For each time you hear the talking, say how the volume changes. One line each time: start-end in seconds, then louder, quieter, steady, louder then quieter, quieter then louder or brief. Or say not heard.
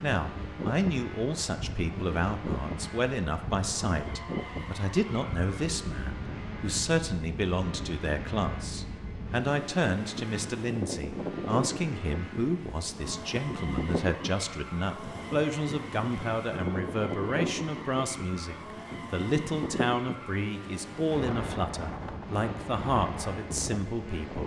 0.0-24.4 steady.